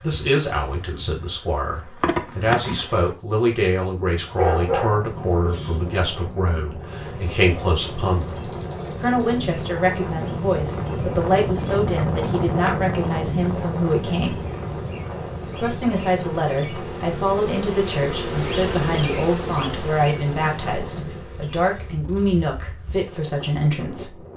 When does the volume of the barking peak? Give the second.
5 s.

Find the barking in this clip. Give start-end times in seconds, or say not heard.
4.3-6.0.